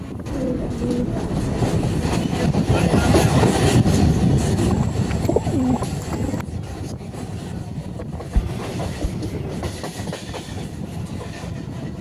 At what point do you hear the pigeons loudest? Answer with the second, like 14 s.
6 s.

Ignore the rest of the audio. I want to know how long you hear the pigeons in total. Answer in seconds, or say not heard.
5 s.